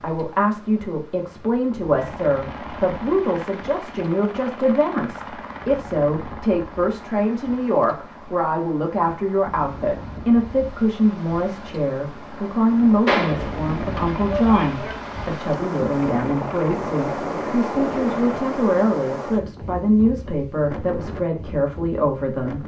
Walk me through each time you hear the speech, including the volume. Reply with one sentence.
You can hear the speech from 0.0 to 22.6 s, at a steady volume.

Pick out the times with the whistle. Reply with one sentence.
The whistle can't be heard in this clip.